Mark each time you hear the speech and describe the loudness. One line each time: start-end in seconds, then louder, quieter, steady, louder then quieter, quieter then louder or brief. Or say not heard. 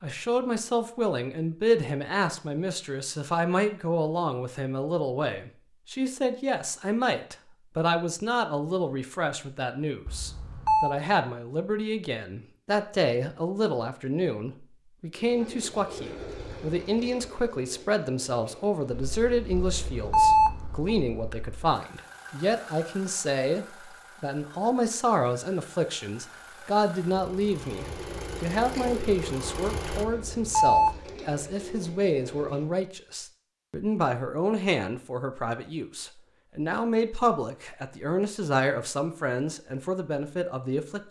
0.0-41.0 steady.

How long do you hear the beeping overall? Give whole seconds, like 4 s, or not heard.
3 s.